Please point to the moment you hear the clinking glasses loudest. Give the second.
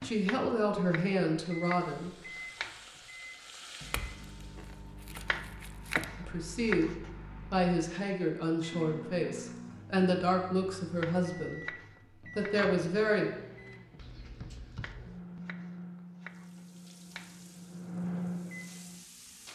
6 s.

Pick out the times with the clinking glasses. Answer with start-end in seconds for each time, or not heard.
3.9-6.1.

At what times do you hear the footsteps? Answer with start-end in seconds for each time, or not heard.
not heard.